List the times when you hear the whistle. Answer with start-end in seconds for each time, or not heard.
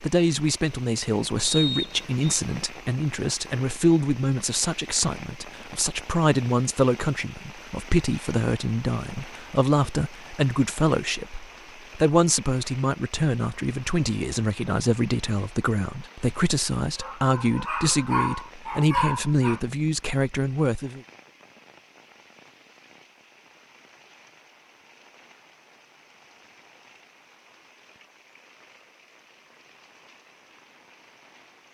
1.4-2.4.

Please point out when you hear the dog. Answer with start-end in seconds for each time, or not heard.
17.0-19.6.